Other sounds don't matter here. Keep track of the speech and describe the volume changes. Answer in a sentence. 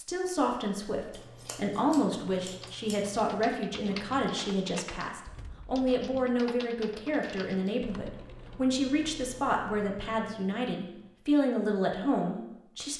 The loudness of the speech stays about the same.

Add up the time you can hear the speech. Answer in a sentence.
You can hear the speech for 13 seconds altogether.